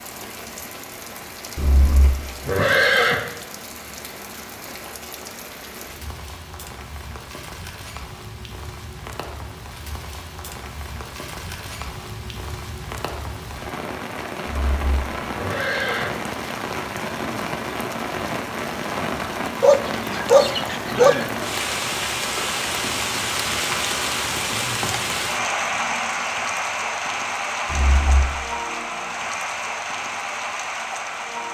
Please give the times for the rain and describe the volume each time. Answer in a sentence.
You can hear the rain from 0.0 to 31.4 s, getting louder.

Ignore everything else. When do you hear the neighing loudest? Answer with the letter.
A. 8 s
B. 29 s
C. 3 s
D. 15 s
C.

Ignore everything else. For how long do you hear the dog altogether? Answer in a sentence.
The dog can be heard for 2 seconds in total.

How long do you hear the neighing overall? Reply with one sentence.
The neighing can be heard for 4 seconds in total.